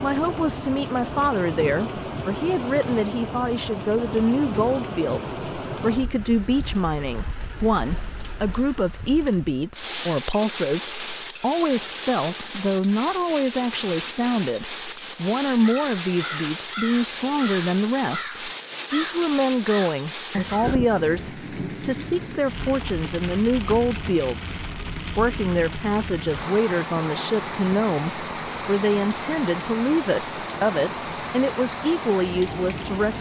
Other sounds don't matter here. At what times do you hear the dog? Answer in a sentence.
The dog can't be heard in this clip.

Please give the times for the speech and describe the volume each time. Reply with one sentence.
The speech can be heard from 0.0 to 33.1 s, at a steady volume.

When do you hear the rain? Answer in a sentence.
The rain can be heard from 0.0 to 33.1 s.